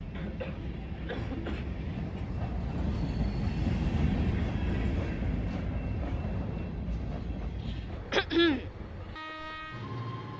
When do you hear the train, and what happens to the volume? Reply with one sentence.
The train can be heard from 0.0 to 10.3 s, getting louder then quieter.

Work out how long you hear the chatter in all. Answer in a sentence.
You can't hear the chatter here.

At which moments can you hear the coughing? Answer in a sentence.
You can hear the coughing from 0.1 to 1.7 s and from 8.1 to 8.7 s.